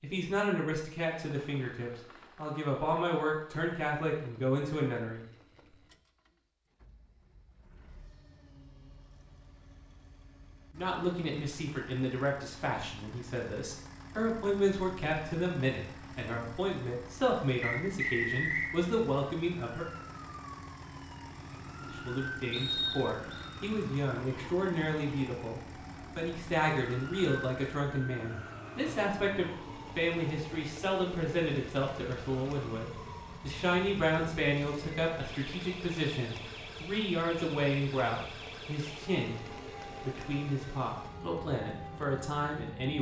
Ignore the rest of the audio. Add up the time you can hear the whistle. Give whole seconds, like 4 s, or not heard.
2 s.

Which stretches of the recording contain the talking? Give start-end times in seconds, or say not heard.
0.0-5.2, 10.8-19.9, 21.9-39.4, 40.0-42.9.